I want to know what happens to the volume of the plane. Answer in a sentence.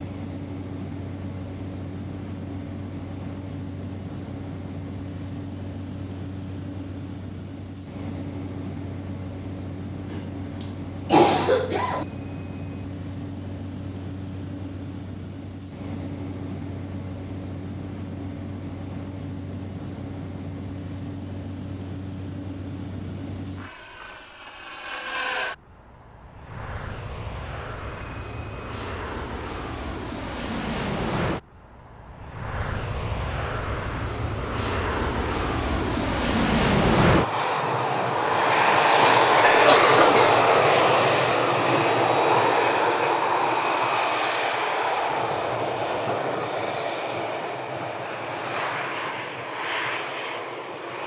The volume of the plane goes up.